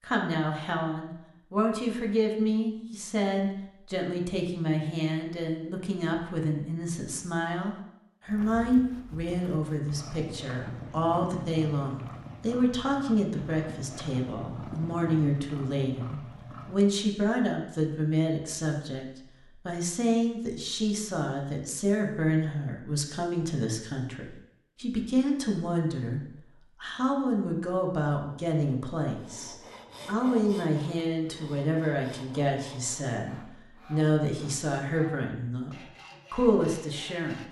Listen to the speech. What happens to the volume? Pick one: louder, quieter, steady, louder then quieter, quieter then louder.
steady.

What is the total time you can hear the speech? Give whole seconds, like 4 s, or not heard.
37 s.